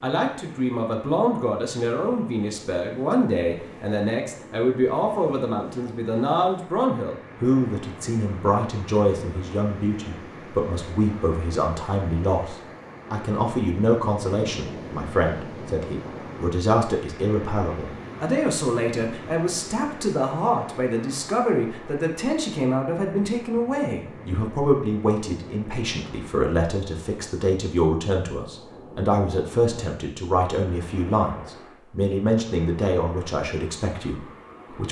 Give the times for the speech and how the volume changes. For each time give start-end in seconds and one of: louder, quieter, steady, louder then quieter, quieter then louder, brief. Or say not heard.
0.0-34.8 steady.